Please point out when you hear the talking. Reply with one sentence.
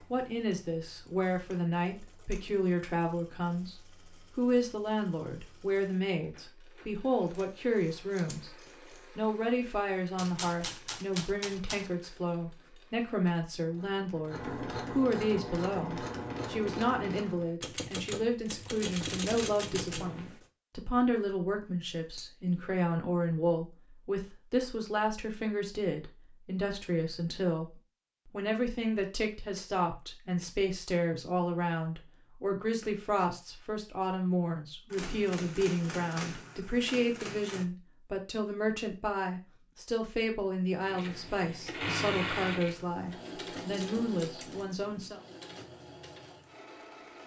You can hear the talking from 0.1 to 8.5 s, from 9.2 to 27.7 s and from 28.3 to 45.2 s.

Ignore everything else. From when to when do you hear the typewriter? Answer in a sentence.
The typewriter can be heard from 10.2 to 11.9 s, from 17.6 to 20.4 s and from 34.9 to 37.6 s.